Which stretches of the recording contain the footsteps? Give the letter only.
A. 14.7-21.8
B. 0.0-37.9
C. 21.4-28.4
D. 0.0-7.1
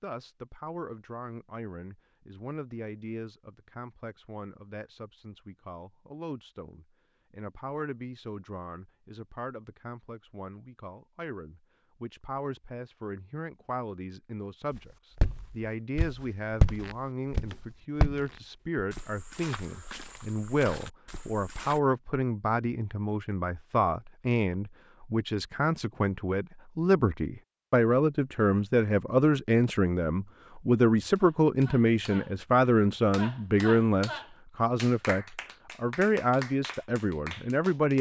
A.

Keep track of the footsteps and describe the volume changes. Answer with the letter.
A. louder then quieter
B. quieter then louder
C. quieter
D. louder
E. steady
A.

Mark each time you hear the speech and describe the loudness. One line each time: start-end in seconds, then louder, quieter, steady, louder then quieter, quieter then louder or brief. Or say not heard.
0.0-37.9 louder.